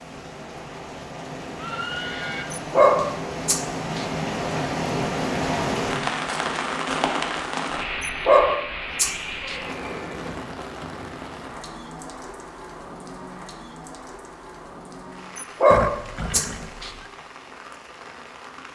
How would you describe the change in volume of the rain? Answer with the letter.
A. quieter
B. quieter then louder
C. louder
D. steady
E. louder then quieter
E.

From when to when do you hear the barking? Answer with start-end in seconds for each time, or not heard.
2.5-4.0, 8.0-9.6, 15.3-16.9.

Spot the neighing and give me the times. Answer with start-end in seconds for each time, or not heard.
1.6-2.5, 9.2-10.4, 15.7-17.1.